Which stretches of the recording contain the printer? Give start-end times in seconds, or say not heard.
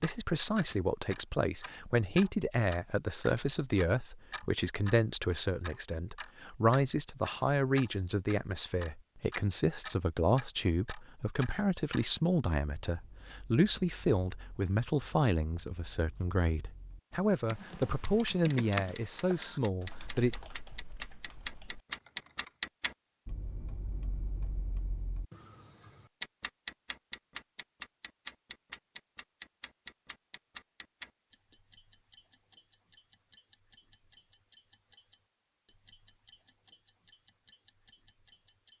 not heard.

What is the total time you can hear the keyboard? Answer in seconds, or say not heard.
5 s.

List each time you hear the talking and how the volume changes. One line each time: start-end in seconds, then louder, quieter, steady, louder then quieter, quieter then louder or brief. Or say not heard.
0.0-20.4 steady.